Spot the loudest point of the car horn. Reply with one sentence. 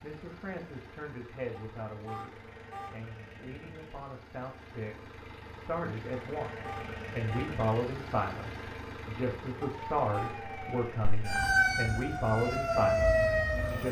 The volume of the car horn peaks at 10 seconds.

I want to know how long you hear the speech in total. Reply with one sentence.
The speech can be heard for 14 seconds in total.